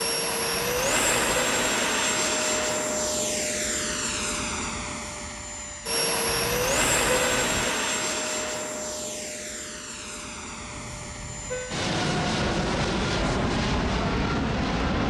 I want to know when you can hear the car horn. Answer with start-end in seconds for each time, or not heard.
0.6-1.8, 6.3-7.8, 10.7-11.8.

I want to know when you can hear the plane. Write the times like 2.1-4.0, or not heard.
0.0-15.0.